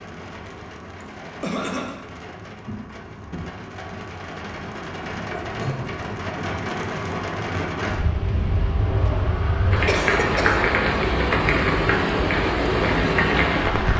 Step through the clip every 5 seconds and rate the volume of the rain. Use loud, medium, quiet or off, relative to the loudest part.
quiet, medium, loud.